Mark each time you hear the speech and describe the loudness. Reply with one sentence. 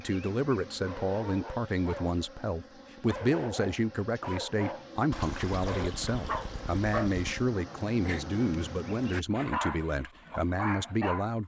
The speech can be heard from 0.0 to 11.4 s, at a steady volume.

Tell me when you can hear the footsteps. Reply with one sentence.
You can't hear the footsteps here.